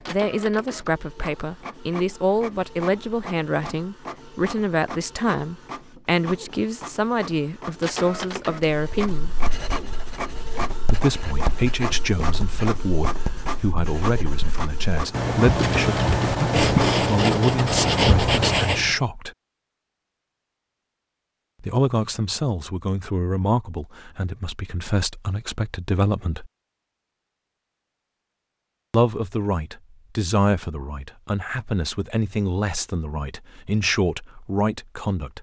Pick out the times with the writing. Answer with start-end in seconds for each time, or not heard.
8.7-18.9.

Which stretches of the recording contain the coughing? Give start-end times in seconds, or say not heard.
not heard.